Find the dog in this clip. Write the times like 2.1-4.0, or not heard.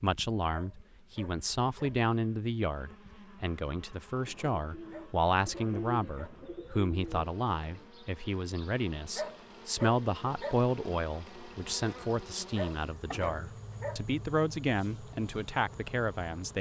0.5-2.0, 4.9-6.4, 9.2-10.7, 12.6-14.1.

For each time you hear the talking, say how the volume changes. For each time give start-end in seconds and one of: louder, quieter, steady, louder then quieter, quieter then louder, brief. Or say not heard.
0.0-16.5 steady.